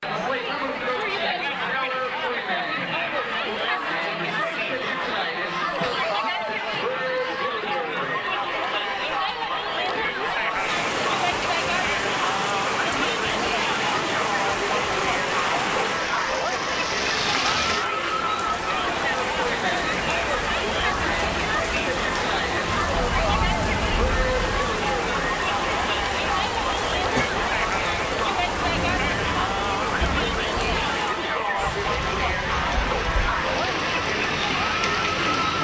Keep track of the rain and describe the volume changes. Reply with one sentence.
The loudness of the rain stays about the same.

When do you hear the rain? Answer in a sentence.
You can hear the rain from 10.5 to 35.5 s.